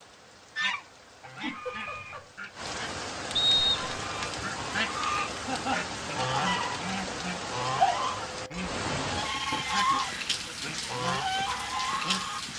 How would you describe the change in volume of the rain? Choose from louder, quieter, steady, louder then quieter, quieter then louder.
louder.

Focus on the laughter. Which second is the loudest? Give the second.
6 s.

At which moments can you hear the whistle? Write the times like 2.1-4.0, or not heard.
3.4-4.0.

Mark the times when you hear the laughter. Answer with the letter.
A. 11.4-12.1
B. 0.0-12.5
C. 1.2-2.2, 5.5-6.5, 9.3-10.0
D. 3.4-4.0
C.